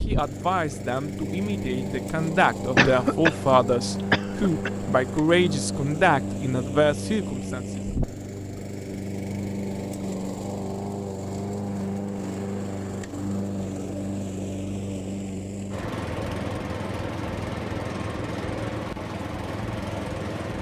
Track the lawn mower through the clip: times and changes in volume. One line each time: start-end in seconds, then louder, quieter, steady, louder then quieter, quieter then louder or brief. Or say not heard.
0.0-20.5 steady.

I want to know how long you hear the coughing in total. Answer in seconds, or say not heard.
2 s.